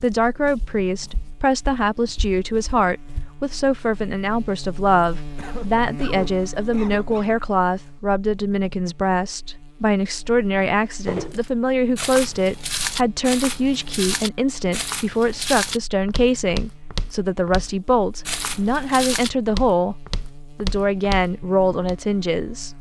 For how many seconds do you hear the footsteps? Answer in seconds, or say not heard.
14 s.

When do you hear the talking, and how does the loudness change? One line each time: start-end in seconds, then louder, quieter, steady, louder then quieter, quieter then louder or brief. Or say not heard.
0.0-19.9 steady
20.6-22.7 brief.